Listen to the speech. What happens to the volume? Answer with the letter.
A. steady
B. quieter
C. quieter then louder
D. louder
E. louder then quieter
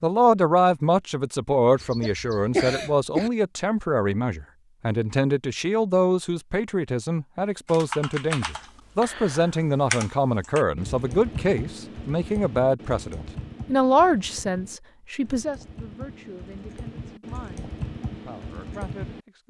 B.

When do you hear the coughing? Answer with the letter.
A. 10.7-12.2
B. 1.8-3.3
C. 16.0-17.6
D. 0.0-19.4
B.